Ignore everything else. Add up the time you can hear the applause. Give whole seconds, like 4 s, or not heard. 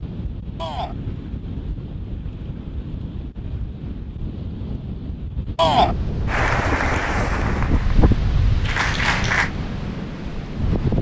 3 s.